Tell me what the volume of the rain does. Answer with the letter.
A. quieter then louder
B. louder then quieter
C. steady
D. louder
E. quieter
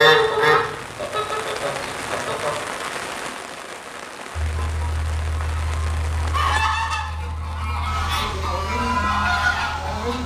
E.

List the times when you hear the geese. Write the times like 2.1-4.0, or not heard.
0.0-2.5, 4.3-10.2.